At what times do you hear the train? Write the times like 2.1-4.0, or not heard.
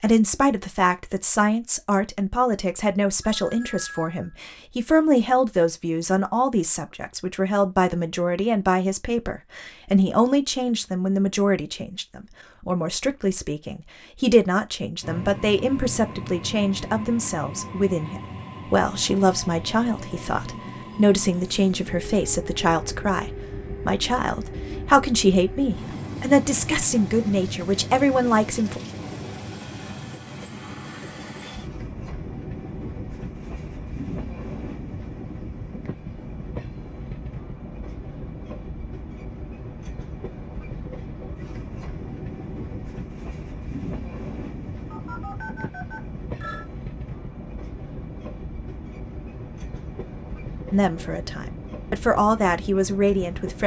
15.0-53.6.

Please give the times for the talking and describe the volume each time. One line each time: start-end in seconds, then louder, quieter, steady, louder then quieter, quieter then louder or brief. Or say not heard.
0.0-28.8 steady
50.7-53.6 brief.